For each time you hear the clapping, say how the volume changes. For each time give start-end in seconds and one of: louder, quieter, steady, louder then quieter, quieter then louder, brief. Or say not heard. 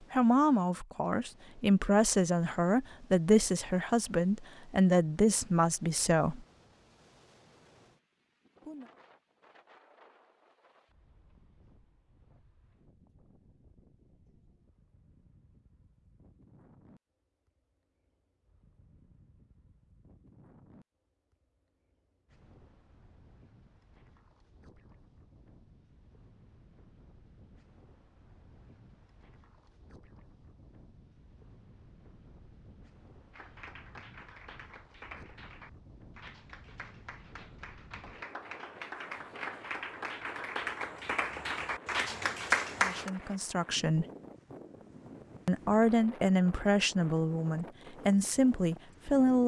33.3-43.1 louder.